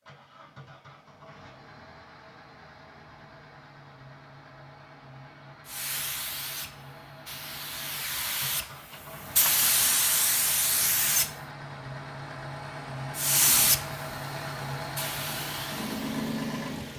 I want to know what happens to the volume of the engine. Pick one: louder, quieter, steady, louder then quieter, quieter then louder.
louder.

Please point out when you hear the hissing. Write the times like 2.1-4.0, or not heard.
5.7-11.3, 13.2-16.9.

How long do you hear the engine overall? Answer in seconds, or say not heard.
17 s.